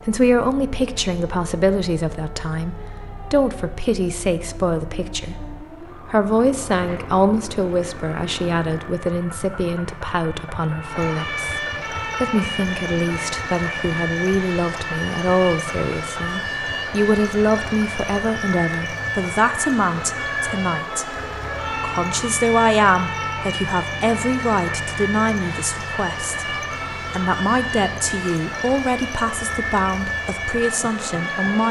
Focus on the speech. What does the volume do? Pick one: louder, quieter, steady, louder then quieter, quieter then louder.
steady.